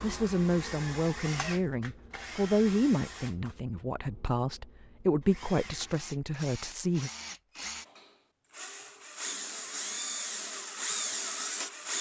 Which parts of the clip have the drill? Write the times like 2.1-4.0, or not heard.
0.0-11.9.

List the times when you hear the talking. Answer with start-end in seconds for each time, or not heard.
0.0-7.1.